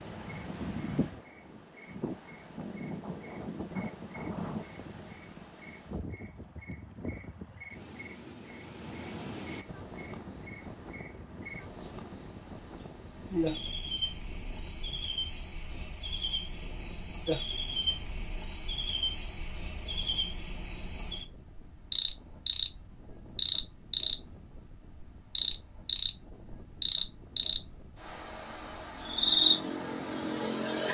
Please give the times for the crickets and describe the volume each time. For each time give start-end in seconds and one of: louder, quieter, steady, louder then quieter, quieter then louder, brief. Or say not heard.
0.2-30.8 louder.